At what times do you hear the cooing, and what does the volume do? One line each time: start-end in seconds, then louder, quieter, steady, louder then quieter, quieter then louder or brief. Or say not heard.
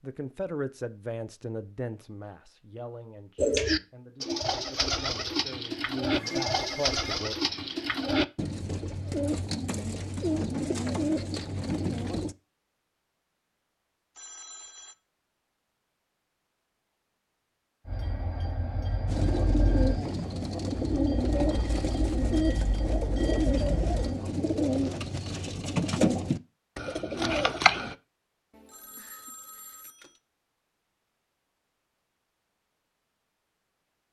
3.4-12.3 steady
19.1-27.9 steady.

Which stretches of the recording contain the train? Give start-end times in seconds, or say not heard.
17.9-24.1.